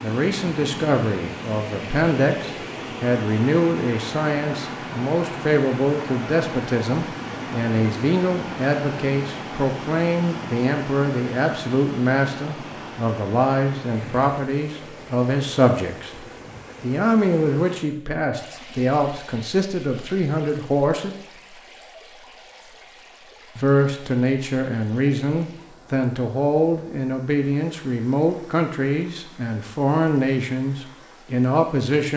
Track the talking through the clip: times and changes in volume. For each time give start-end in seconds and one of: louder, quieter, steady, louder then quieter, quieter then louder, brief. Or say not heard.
0.0-21.1 steady
23.6-32.1 steady.